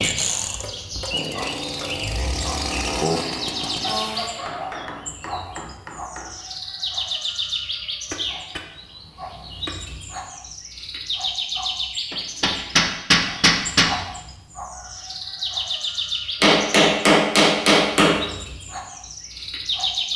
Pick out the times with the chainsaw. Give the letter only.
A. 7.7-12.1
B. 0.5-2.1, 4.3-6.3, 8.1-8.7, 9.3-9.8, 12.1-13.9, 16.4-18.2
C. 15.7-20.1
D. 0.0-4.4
D.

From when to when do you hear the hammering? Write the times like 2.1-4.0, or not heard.
0.5-2.1, 4.3-6.3, 8.1-8.7, 9.3-9.8, 12.1-13.9, 16.4-18.2.